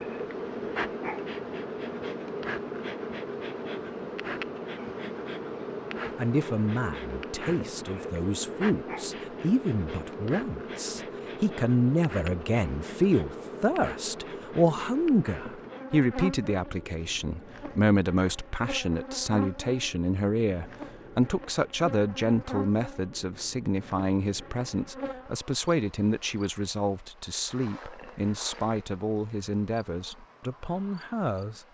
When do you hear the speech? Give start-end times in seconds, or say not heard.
6.2-31.6.